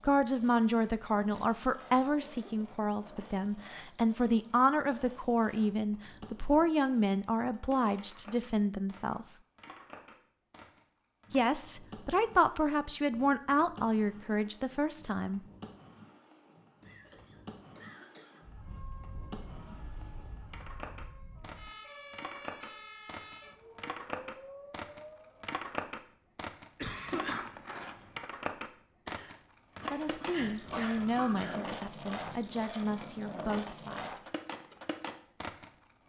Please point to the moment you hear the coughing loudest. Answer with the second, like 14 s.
27 s.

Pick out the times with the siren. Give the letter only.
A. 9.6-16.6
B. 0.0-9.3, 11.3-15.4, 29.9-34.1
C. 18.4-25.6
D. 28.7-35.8
C.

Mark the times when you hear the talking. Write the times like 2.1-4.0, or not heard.
0.0-9.3, 11.3-15.4, 29.9-34.1.